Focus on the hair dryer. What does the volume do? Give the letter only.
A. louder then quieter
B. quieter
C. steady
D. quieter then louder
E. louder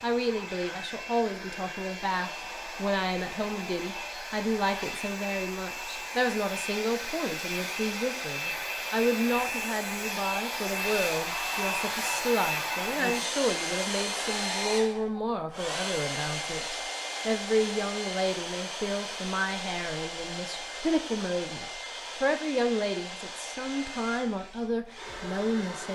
A.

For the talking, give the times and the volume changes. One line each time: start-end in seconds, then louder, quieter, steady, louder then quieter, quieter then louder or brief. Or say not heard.
0.0-25.9 steady.